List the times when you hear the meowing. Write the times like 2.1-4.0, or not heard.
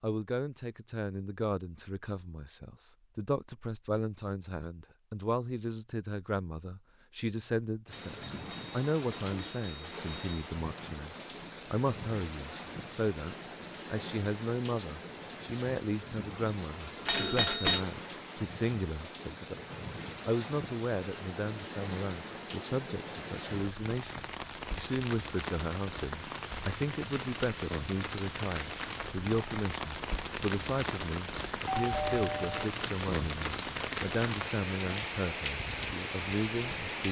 not heard.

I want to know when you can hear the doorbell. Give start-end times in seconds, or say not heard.
7.9-10.4, 17.1-17.8, 31.6-32.7.